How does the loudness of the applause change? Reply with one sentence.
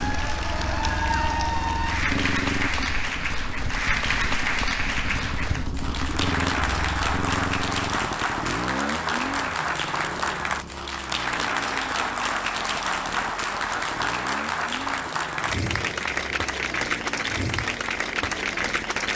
The loudness of the applause stays about the same.